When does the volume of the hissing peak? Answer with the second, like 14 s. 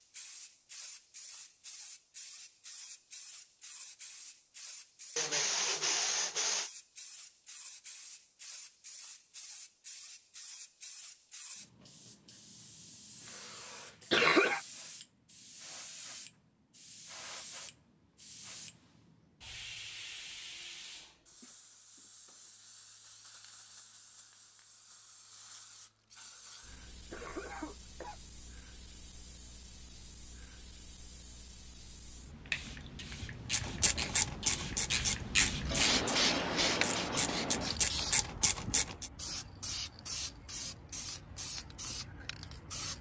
36 s.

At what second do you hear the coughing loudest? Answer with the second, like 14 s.
14 s.